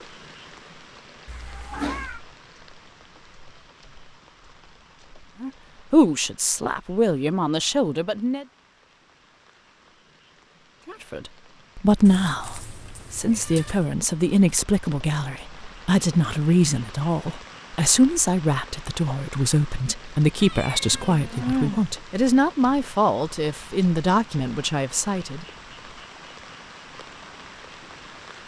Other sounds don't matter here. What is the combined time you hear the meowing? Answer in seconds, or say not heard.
4 s.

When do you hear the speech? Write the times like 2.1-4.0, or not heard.
5.4-8.4, 10.8-25.4.